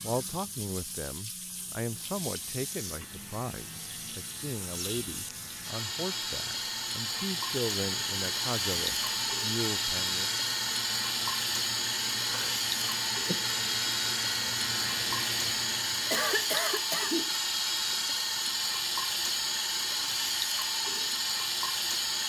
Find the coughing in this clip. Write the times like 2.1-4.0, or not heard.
16.1-17.3.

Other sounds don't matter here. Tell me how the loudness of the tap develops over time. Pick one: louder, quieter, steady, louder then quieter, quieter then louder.
louder.